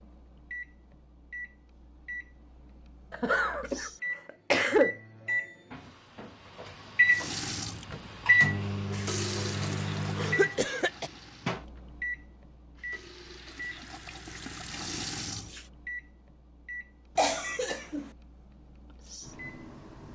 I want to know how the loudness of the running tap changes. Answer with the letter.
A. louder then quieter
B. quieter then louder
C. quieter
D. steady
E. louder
B.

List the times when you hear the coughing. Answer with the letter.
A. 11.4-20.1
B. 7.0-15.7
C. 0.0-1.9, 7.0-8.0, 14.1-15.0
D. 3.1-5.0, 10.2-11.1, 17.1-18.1
D.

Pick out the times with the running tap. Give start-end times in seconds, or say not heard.
7.0-15.7.